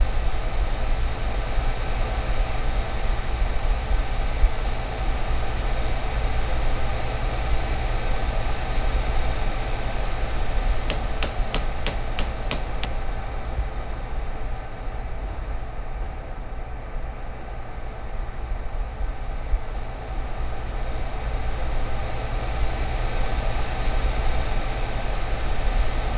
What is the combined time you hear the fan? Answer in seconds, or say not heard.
26 s.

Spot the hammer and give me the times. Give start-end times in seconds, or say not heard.
10.8-12.9.